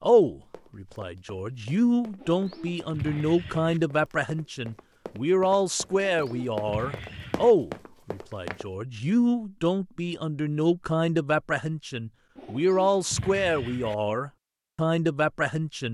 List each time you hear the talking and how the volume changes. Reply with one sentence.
The talking can be heard from 0.0 to 15.8 s, at a steady volume.